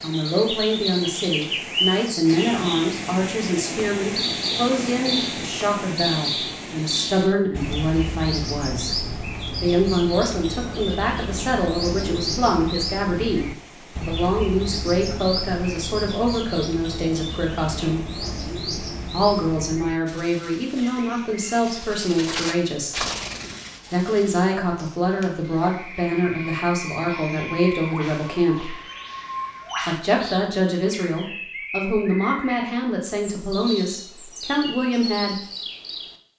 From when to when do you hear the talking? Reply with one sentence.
The talking can be heard from 0.0 to 8.9 s, from 9.6 to 18.0 s, from 19.1 to 23.1 s, from 23.9 to 28.8 s and from 29.9 to 35.4 s.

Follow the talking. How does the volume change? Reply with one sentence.
The loudness of the talking stays about the same.